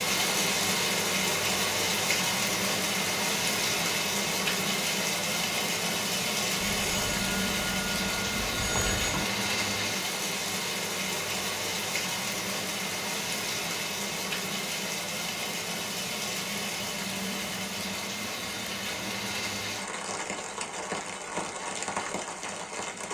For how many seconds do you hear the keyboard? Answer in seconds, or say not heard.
not heard.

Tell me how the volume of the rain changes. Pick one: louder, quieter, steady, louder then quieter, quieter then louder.
quieter.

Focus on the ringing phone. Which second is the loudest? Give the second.
9 s.